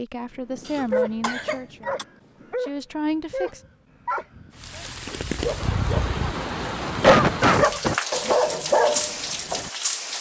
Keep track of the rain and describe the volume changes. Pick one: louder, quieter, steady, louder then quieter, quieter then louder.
steady.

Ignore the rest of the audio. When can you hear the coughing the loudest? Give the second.
7 s.